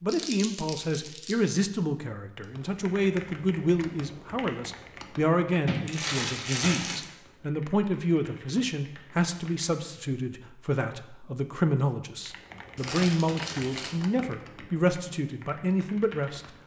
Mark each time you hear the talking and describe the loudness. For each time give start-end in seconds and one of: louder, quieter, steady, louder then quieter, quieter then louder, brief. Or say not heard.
0.0-16.4 steady.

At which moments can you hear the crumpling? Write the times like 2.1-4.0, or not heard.
0.1-1.4, 5.7-7.0, 12.8-13.9.